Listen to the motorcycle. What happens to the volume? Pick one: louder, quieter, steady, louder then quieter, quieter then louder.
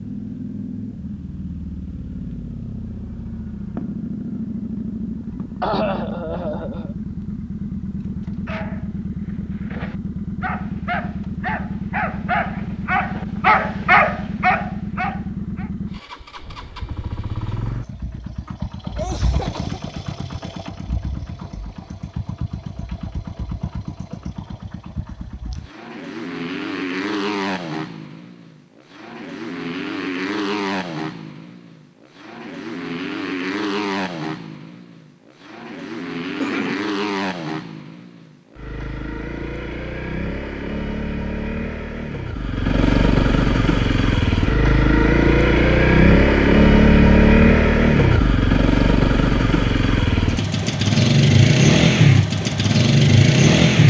louder.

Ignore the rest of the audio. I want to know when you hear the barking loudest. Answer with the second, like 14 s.
14 s.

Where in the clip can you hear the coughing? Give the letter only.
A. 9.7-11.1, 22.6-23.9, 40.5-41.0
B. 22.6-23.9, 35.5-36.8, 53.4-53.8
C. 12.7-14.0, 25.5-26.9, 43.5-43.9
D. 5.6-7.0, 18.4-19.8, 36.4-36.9
D.